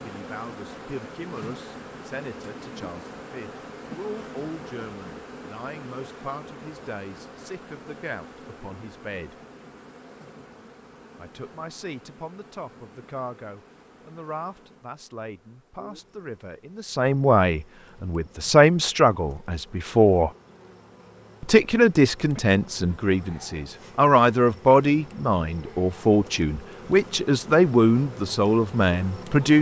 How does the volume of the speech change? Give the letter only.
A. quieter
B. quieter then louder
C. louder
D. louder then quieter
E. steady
C.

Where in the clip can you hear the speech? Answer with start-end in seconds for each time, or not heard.
0.0-9.3, 11.2-20.3, 21.4-29.5.